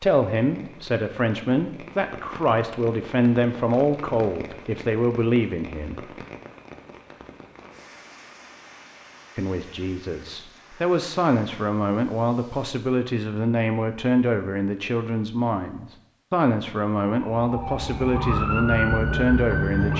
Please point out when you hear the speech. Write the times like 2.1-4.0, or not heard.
0.0-6.0, 9.3-19.9.